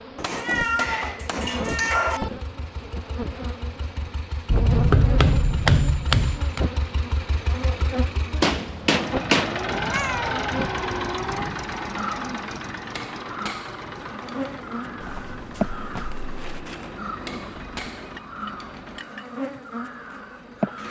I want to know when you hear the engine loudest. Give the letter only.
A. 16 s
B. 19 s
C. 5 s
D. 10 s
D.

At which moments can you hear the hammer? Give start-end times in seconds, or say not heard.
0.1-2.2, 4.5-6.7, 8.4-9.8, 12.9-14.6, 17.2-18.9.